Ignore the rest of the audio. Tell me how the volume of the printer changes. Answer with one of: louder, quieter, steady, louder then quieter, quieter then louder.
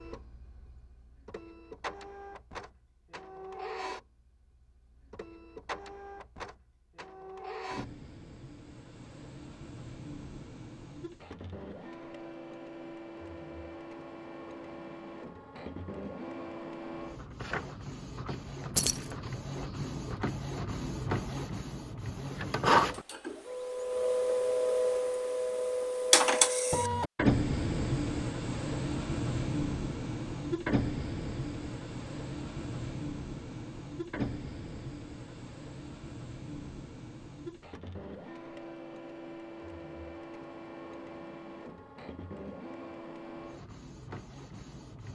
louder then quieter.